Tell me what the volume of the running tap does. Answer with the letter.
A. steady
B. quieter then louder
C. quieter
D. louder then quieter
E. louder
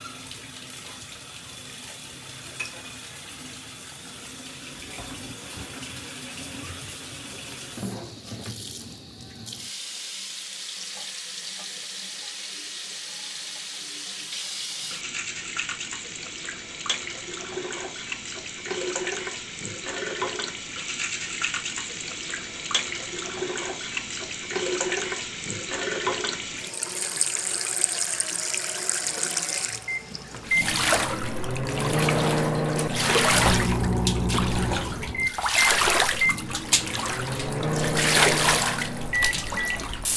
E.